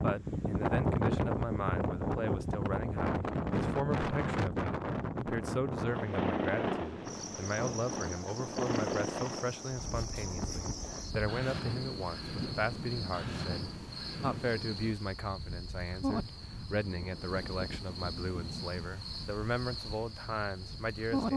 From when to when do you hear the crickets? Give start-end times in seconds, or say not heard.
7.0-21.3.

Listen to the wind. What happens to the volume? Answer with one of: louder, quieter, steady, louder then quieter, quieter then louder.
quieter.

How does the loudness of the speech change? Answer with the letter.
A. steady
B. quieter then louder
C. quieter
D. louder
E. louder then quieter
A.